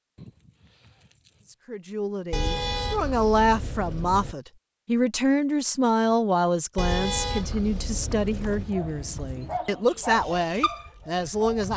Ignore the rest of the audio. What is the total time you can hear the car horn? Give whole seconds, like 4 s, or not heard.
4 s.